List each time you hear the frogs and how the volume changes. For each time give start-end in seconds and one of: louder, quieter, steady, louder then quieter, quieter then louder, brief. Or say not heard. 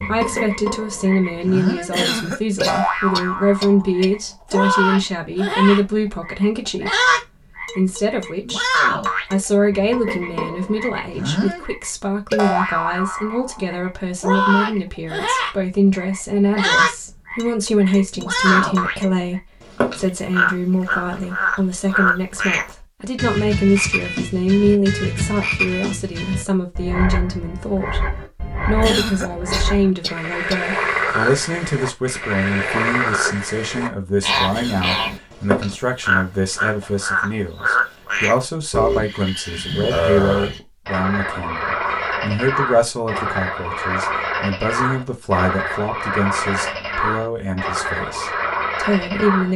0.0-49.5 steady.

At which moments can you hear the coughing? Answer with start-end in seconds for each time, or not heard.
1.9-4.1, 28.8-30.6, 34.5-35.0.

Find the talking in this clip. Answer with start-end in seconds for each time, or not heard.
0.0-49.5.